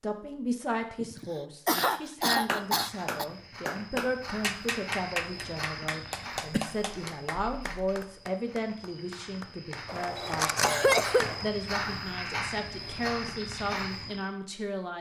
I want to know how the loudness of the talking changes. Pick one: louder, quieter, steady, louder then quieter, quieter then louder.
steady.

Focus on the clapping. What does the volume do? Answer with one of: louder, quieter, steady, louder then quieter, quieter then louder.
quieter.